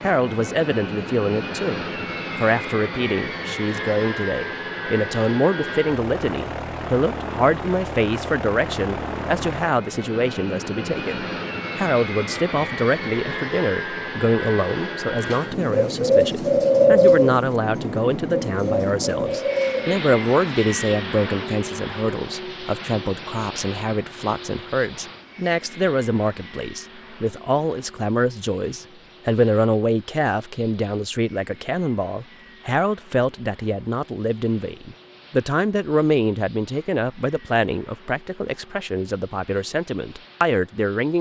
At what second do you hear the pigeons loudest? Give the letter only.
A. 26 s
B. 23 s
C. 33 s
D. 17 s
D.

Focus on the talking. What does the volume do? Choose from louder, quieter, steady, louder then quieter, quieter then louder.
steady.